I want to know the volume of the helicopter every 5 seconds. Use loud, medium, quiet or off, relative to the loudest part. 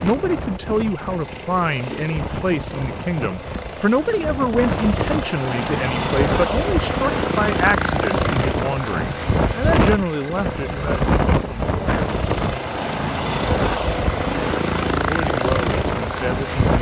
medium, loud, loud, loud.